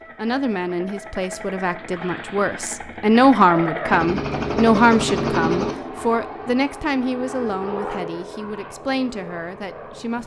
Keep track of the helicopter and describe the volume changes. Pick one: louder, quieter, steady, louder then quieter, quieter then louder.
louder then quieter.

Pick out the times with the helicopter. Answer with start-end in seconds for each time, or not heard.
0.0-10.2.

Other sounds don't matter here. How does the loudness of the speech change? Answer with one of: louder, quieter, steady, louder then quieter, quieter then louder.
louder then quieter.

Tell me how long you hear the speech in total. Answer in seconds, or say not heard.
10 s.